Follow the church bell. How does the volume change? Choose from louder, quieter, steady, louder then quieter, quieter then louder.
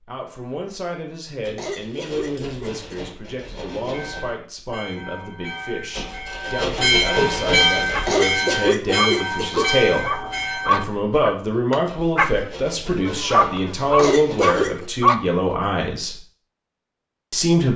louder then quieter.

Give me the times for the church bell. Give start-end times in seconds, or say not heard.
3.9-10.8.